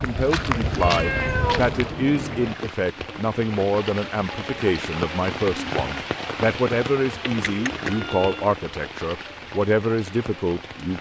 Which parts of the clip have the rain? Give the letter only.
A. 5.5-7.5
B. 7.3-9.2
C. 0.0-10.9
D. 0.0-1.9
C.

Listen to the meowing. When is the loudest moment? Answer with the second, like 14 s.
1 s.